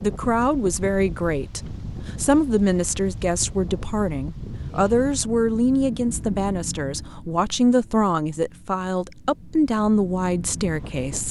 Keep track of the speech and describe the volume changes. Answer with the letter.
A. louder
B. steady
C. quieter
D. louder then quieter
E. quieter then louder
B.